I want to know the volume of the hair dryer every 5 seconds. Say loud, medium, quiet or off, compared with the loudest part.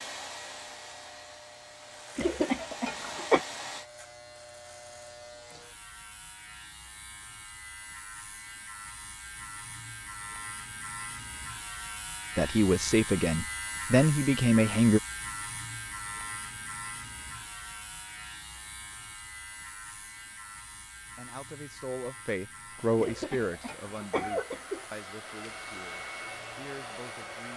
loud, off, off, off, medium, loud.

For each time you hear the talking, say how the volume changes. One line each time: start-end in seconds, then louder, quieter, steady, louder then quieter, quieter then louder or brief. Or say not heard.
12.3-15.0 brief
21.1-27.5 louder then quieter.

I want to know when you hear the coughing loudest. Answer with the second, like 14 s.
3 s.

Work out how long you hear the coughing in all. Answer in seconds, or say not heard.
3 s.